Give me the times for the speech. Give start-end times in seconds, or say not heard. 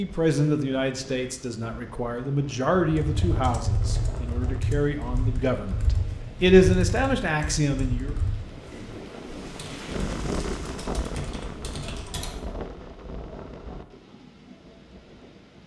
0.0-8.2.